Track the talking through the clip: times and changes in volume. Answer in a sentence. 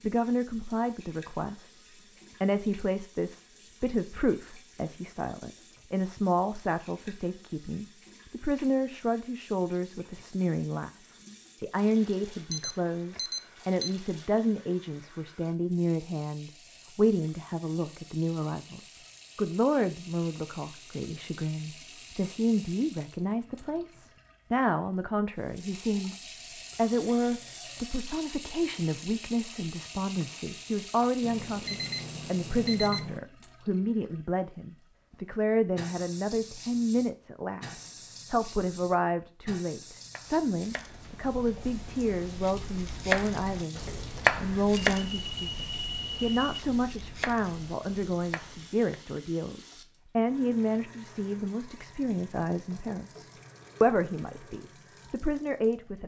You can hear the talking briefly from 0.0 to 1.7 s; from 2.4 to 10.9 s, getting quieter then louder; from 11.6 to 26.1 s, at a steady volume; and from 26.8 to 56.0 s, at a steady volume.